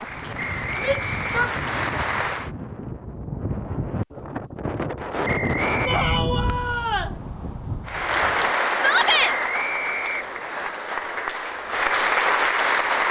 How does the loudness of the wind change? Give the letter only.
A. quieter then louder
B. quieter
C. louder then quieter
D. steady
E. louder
C.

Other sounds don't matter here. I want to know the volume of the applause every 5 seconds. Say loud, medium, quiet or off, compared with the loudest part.
medium, loud, loud.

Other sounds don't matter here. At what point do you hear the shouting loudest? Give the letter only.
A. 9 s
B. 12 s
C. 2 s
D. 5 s
A.